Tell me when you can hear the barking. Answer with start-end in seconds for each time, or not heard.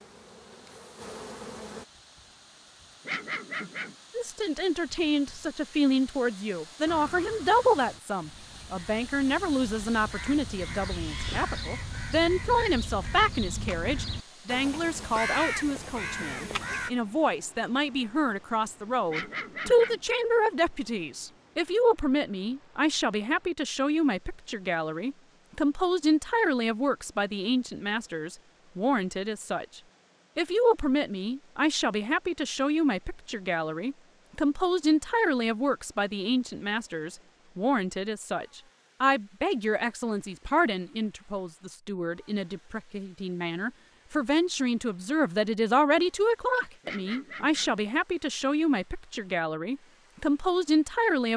3.0-4.0, 19.1-20.0, 46.8-47.8.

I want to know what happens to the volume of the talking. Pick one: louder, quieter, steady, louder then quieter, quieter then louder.
steady.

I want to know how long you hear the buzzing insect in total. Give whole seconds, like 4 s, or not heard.
2 s.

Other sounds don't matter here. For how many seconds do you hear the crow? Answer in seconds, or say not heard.
10 s.